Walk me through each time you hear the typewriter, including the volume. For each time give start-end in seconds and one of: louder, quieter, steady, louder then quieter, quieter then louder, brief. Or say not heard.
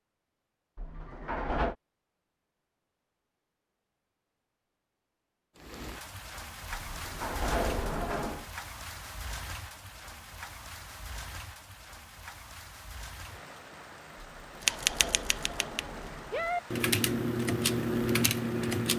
14.6-18.9 louder.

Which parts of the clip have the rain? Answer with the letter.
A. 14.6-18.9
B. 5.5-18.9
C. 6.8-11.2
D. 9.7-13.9
B.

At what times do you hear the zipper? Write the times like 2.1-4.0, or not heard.
not heard.